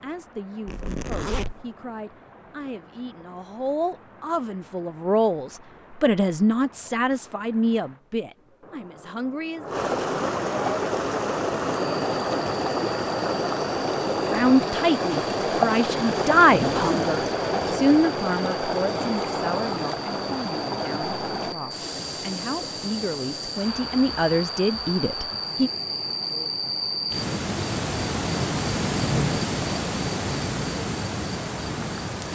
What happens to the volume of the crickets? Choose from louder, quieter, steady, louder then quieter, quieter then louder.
louder.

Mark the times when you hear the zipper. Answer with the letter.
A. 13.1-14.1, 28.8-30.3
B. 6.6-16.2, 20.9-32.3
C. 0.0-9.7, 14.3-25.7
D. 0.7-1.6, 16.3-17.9
D.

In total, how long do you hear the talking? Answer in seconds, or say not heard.
21 s.